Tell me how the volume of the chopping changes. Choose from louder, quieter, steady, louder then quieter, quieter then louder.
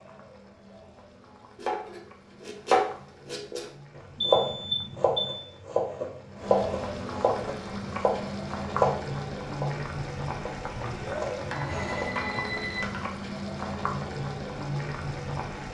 quieter.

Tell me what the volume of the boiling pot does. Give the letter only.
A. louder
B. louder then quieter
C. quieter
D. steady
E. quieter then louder
A.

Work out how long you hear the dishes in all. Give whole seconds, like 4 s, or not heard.
2 s.